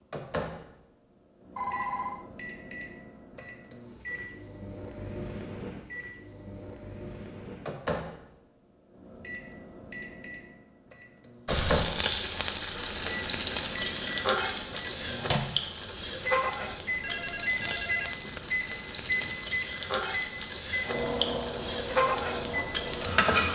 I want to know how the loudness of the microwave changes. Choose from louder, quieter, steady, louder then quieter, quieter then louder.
louder.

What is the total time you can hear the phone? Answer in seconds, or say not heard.
2 s.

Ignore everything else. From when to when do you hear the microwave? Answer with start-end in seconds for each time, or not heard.
0.1-23.5.